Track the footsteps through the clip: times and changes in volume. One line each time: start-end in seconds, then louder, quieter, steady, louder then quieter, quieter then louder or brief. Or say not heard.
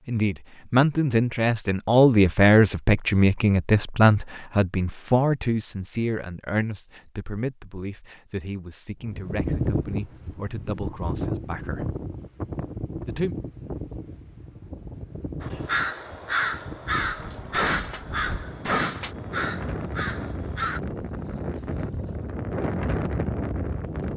not heard.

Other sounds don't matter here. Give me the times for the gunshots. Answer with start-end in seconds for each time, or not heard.
17.5-19.1.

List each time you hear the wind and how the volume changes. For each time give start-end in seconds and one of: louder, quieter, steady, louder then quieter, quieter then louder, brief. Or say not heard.
9.0-24.1 quieter then louder.